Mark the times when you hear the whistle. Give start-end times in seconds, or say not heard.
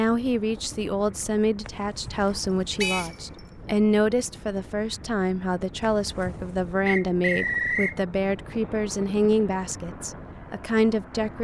2.8-3.4, 6.8-8.0.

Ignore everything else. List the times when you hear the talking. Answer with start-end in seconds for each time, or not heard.
0.0-11.4.